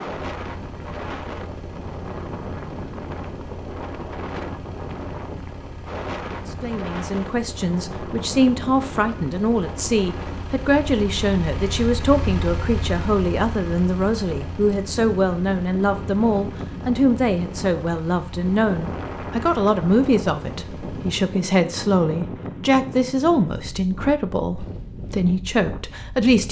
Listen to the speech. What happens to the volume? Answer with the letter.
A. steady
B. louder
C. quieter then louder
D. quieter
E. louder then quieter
A.